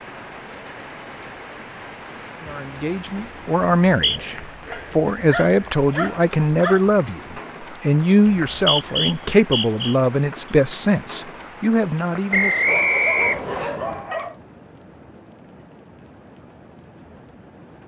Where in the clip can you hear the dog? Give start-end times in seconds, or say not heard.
4.7-7.0, 12.7-14.4.